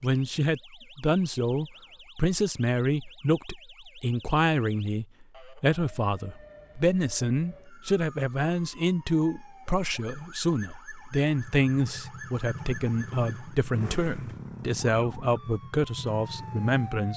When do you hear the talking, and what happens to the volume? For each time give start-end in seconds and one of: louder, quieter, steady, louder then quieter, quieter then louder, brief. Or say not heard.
0.0-17.1 steady.